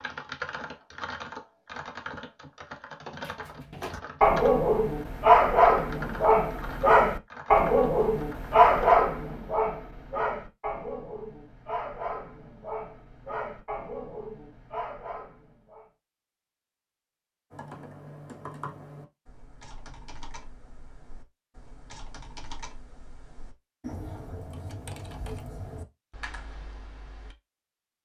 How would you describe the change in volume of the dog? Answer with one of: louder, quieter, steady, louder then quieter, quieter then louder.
quieter.